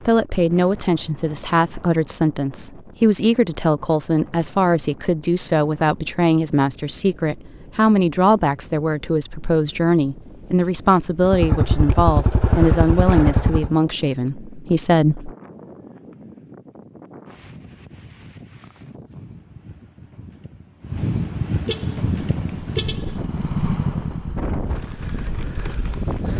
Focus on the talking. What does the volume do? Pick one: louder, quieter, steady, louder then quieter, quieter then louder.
steady.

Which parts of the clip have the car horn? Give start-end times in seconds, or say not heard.
21.6-23.2.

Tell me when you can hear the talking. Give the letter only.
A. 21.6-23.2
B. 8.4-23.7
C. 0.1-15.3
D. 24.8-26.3
C.